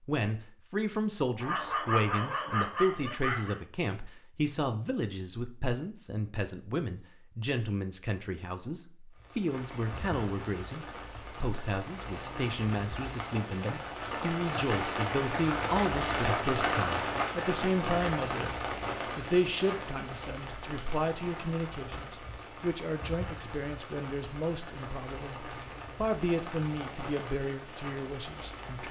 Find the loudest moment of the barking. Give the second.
2 s.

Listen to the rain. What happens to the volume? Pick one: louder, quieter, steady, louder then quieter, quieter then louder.
louder then quieter.